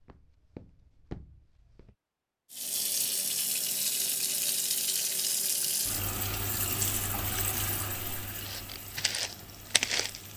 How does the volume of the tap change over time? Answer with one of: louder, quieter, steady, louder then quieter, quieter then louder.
quieter.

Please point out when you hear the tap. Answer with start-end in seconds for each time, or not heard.
2.5-10.3.